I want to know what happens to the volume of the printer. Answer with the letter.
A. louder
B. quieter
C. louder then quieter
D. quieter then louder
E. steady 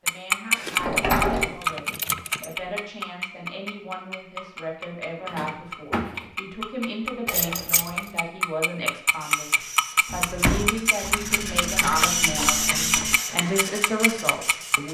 C.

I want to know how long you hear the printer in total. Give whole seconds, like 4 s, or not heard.
6 s.